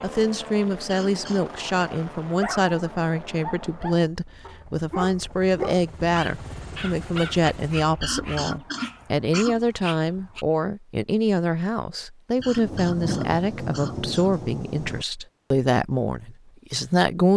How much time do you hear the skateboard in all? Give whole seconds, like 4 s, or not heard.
not heard.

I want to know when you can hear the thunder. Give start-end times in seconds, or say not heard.
12.3-15.1.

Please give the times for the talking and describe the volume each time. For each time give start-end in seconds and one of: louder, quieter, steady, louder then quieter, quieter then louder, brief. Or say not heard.
0.0-17.3 steady.